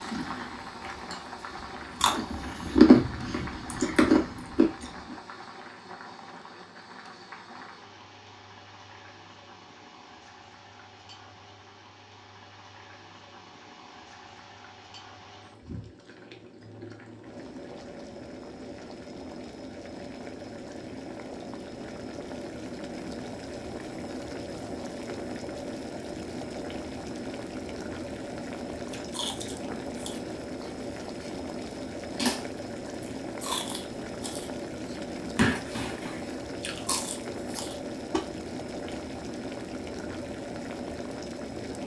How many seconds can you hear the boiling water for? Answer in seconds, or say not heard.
42 s.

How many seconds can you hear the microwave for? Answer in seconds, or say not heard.
not heard.